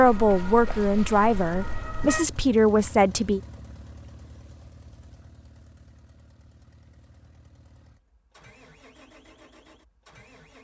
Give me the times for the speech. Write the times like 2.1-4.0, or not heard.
0.0-3.4.